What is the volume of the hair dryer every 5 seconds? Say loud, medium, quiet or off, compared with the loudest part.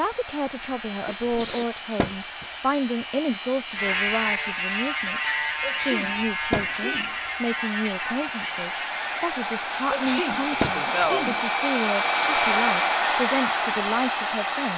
quiet, medium, loud.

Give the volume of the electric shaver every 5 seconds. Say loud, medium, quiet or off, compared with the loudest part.
loud, loud, off.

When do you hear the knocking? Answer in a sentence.
You can hear the knocking from 1.9 to 2.5 s, from 6.5 to 7.0 s and from 10.6 to 11.1 s.